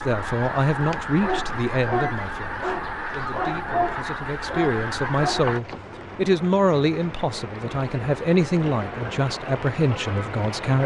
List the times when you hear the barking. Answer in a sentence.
The barking can be heard from 0.8 to 5.8 s.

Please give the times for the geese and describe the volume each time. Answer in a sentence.
The geese can be heard from 0.0 to 5.6 s, at a steady volume.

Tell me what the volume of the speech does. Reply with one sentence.
The volume of the speech goes down, then up.